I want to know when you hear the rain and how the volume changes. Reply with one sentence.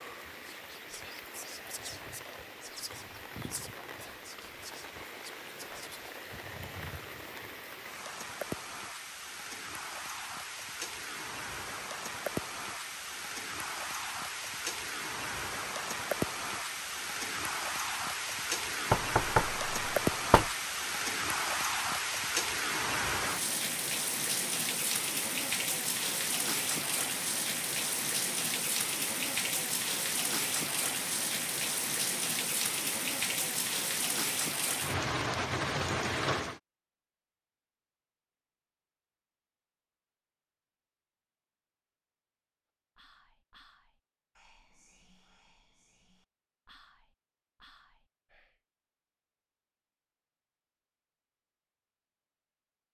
The rain can be heard from 0.0 to 36.6 s, getting louder.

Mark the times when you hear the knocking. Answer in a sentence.
The knocking can be heard from 18.9 to 20.5 s.